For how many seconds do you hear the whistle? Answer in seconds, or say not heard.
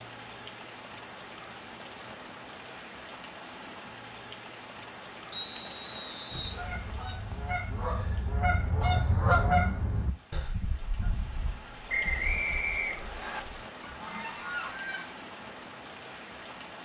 3 s.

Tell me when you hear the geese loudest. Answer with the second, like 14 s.
9 s.